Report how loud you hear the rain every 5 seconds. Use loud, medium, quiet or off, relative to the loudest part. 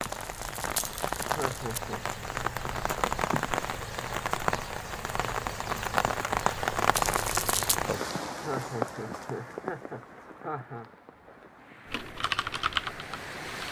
loud, loud, quiet.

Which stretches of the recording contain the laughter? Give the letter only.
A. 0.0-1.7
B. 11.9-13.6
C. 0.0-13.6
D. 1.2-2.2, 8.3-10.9
D.